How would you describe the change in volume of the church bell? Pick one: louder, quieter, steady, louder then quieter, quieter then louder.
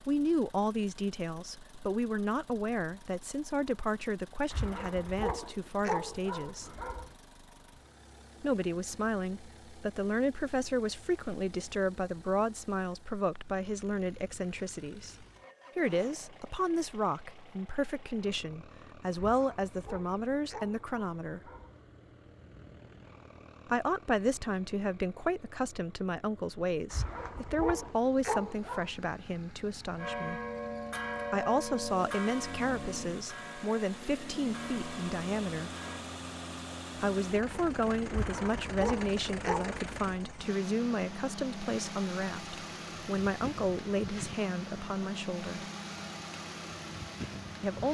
quieter.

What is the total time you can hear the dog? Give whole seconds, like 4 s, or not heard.
9 s.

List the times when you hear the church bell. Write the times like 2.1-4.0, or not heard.
29.9-36.0.